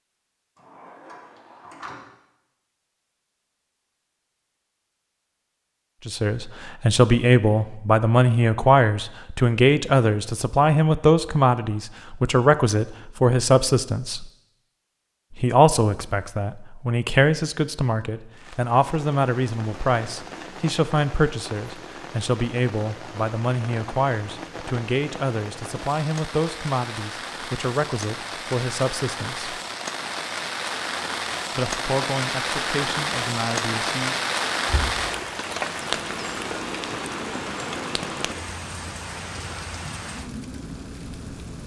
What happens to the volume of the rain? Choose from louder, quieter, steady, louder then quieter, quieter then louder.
louder then quieter.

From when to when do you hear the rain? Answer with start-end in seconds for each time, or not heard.
18.3-41.6.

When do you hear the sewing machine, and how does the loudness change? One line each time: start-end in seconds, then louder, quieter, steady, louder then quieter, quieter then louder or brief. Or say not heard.
not heard.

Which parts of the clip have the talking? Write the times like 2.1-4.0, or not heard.
6.0-14.2, 15.3-29.6, 31.6-34.1.